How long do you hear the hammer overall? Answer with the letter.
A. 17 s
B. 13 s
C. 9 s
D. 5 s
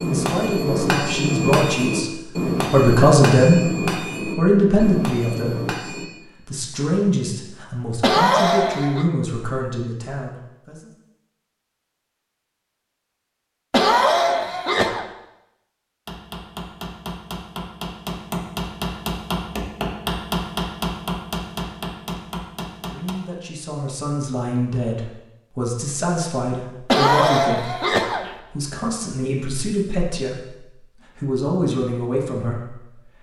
B.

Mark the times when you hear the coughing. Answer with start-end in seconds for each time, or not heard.
8.0-9.1, 13.7-15.1, 26.9-28.3.